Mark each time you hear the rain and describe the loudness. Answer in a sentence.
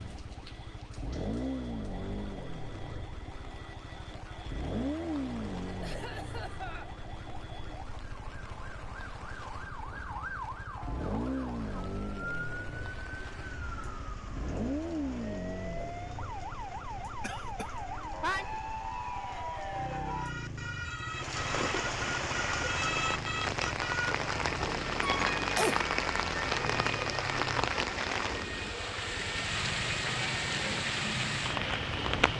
You can hear the rain from 0.0 to 32.3 s, getting louder.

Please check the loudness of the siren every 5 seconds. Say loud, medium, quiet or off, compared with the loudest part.
quiet, medium, medium, loud, loud, loud, medium.